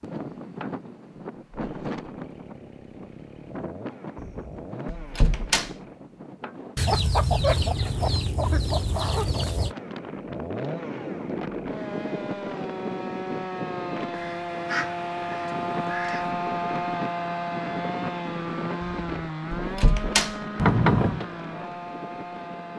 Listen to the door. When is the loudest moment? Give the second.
21 s.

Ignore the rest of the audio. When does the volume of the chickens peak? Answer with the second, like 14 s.
7 s.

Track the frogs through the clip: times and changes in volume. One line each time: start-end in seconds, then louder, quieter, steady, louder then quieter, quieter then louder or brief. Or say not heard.
not heard.